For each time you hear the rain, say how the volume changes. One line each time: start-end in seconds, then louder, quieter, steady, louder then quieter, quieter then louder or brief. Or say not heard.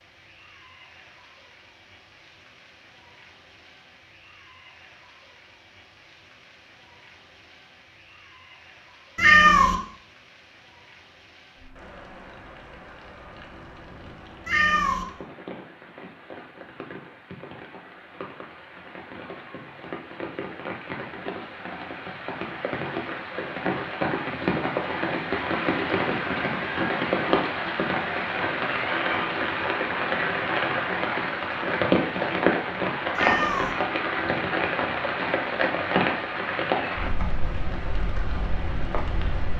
0.0-39.5 louder.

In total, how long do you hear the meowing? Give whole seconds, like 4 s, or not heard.
2 s.